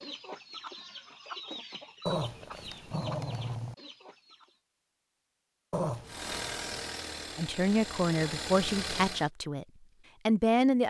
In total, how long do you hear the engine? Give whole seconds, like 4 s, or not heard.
3 s.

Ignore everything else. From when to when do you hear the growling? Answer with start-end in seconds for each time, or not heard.
2.0-3.8, 5.7-6.4.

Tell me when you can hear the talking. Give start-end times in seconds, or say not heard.
7.3-9.7, 10.2-10.8.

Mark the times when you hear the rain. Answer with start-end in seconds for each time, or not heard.
not heard.